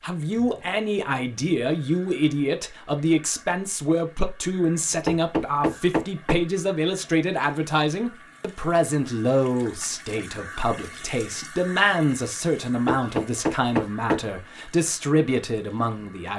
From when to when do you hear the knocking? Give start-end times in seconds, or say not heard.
5.0-6.4, 12.8-14.2.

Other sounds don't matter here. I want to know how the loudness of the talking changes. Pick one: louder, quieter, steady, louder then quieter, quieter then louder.
steady.